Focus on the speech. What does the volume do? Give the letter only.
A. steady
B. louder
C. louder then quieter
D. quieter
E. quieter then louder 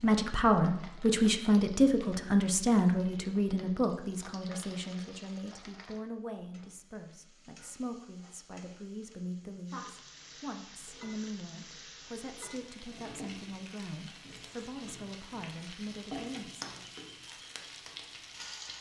D.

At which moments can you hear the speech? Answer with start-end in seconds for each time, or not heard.
0.0-16.8.